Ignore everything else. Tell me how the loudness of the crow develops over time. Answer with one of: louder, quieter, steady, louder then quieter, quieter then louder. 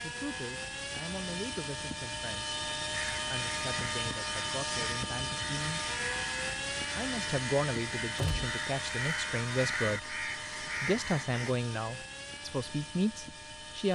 louder.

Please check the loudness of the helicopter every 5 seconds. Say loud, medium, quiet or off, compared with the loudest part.
loud, loud, medium.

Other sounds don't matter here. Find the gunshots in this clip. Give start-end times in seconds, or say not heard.
8.2-8.6.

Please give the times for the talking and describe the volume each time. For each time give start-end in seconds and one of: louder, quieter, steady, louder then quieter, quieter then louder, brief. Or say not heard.
0.0-5.8 steady
6.8-13.9 steady.